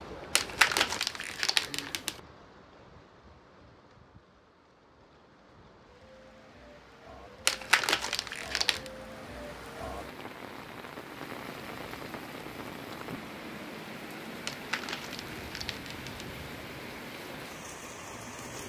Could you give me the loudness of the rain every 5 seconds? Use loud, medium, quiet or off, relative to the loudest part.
medium, medium, loud, loud.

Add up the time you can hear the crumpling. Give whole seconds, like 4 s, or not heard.
5 s.